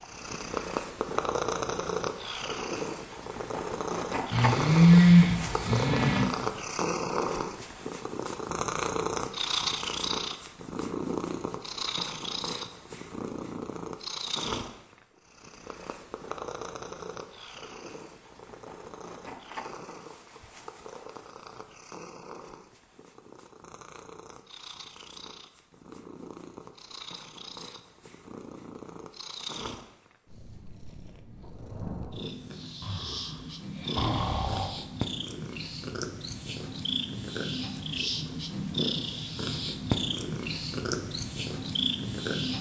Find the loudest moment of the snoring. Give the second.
5 s.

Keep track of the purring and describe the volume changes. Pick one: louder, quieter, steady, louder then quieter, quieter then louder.
quieter then louder.